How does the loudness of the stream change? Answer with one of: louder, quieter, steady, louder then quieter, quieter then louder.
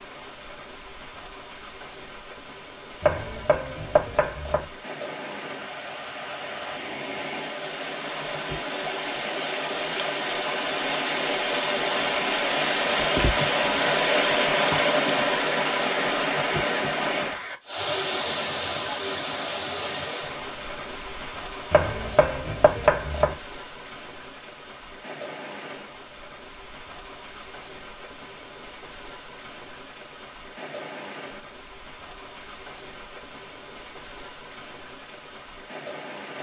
louder then quieter.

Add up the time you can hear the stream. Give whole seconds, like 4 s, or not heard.
36 s.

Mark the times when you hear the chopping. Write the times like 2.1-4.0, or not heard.
3.0-4.7, 21.7-23.4.